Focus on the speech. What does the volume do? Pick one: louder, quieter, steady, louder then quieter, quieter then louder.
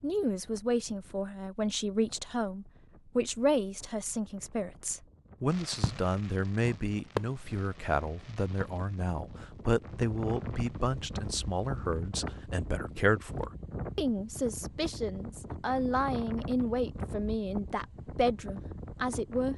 steady.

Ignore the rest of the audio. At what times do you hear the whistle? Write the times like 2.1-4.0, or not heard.
not heard.